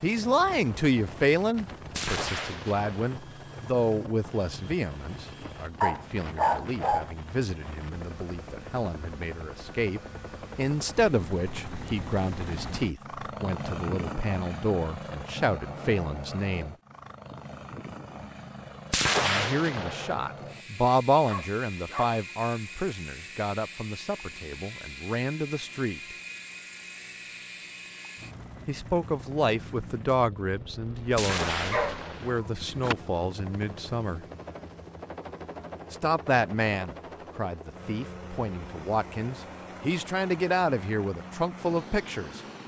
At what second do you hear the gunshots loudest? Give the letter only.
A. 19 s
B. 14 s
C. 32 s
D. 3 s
A.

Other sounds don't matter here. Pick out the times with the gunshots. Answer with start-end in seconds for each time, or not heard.
1.9-3.2, 18.9-20.1, 31.1-32.4.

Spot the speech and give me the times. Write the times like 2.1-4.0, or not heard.
0.0-16.8, 19.2-26.0, 28.6-34.2, 35.9-42.4.